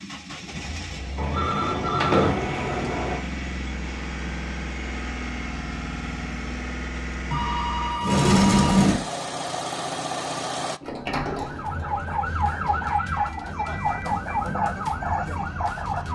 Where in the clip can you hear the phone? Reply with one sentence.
The phone can be heard from 1.1 to 3.2 s, from 7.2 to 8.9 s and from 13.1 to 14.4 s.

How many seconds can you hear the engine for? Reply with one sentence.
The engine can be heard for 11 seconds in total.